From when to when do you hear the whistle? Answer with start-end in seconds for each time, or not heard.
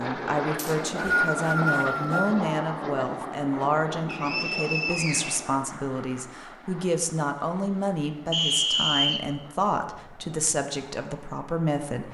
0.6-2.4, 4.0-5.4, 8.3-9.2.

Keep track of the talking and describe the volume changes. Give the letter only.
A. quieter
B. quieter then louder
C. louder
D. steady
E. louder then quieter
D.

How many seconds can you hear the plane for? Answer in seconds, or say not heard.
12 s.